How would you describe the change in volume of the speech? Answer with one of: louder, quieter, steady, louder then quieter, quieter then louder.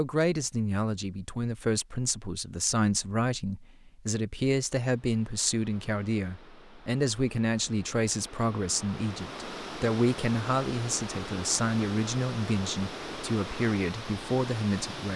steady.